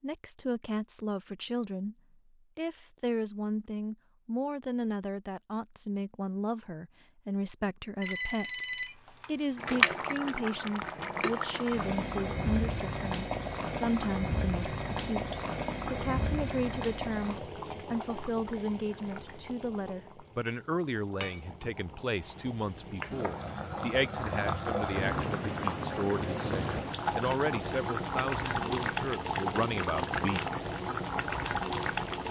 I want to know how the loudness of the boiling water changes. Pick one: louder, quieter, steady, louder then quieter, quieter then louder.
quieter then louder.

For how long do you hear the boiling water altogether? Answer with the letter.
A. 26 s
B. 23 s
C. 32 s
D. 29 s
B.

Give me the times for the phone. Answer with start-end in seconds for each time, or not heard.
8.0-9.8.